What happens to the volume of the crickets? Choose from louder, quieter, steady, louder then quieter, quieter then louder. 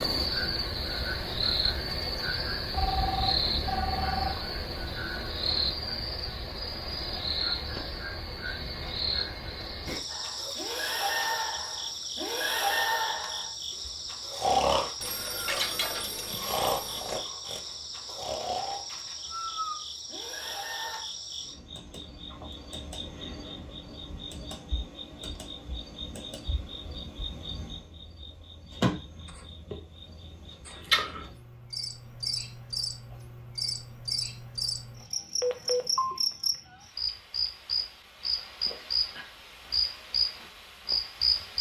quieter then louder.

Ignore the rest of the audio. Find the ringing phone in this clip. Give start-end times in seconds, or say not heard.
2.7-4.3, 15.0-17.2, 35.4-36.1.